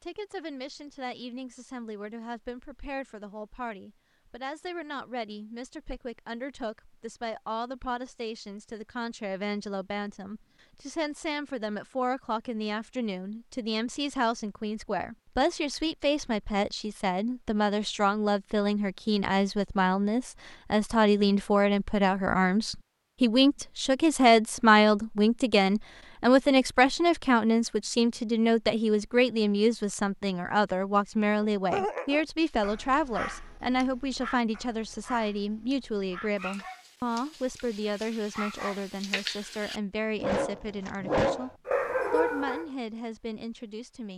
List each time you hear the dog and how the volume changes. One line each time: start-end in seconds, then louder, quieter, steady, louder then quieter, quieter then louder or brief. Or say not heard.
31.4-42.6 quieter then louder.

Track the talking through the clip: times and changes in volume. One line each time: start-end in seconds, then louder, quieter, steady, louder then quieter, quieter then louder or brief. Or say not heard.
0.0-41.5 louder then quieter
42.1-44.1 brief.